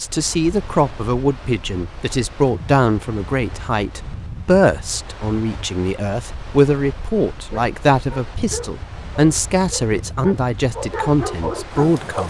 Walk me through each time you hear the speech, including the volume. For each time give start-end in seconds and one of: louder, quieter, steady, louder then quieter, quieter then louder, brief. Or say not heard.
0.0-12.2 steady.